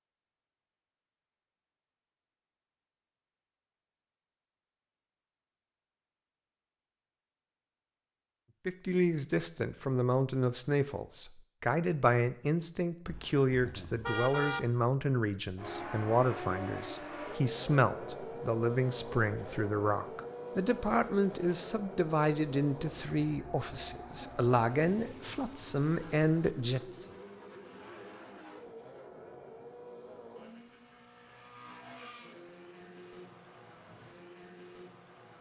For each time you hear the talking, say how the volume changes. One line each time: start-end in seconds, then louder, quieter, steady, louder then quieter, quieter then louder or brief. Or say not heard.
8.7-27.1 steady.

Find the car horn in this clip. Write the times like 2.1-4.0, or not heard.
13.1-14.6.